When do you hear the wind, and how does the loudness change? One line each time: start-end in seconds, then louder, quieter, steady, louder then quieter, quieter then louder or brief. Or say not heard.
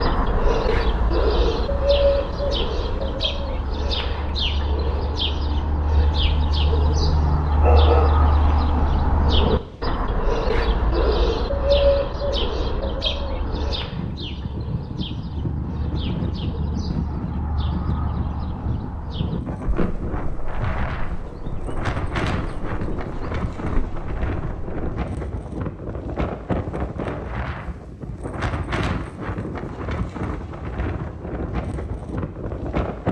0.0-33.0 louder.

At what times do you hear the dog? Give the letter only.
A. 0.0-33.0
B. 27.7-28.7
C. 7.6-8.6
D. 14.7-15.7
C.